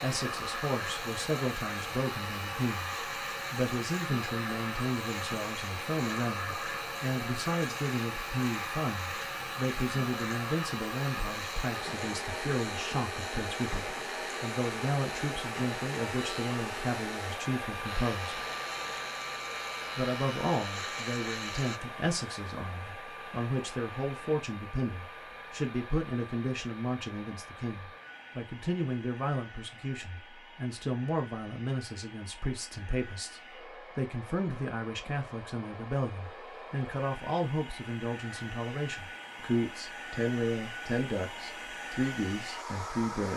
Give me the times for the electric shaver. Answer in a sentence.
The electric shaver can be heard from 0.0 to 21.8 s.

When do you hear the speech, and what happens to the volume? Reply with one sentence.
You can hear the speech from 0.0 to 18.4 s, at a steady volume; and from 19.9 to 43.3 s, at a steady volume.